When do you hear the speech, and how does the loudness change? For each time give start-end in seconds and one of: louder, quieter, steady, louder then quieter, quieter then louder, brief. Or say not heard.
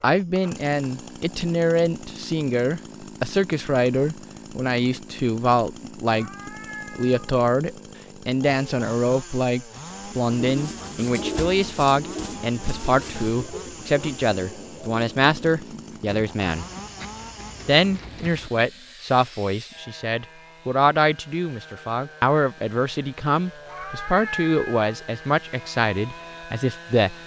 0.0-16.6 steady
17.6-27.1 steady.